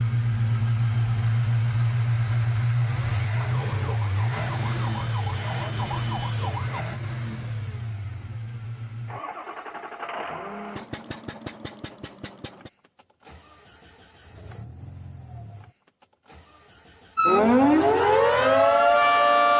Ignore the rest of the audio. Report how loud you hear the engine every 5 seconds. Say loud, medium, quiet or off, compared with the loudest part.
loud, medium, quiet, quiet.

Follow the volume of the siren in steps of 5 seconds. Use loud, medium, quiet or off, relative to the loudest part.
quiet, quiet, off, loud.